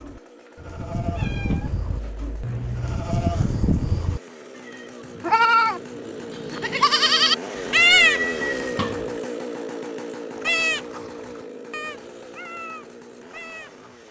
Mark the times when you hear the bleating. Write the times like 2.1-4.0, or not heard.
0.0-8.2, 10.4-13.9.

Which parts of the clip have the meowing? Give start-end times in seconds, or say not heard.
1.0-3.0, 7.5-9.2.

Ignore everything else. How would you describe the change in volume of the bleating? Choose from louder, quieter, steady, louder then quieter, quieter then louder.
louder then quieter.